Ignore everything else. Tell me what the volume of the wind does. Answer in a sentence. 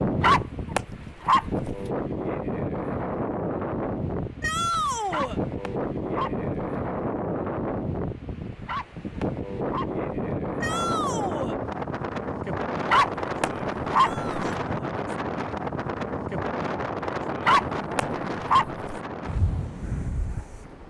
The loudness of the wind stays about the same.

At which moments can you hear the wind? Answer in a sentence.
You can hear the wind from 0.0 to 20.8 s.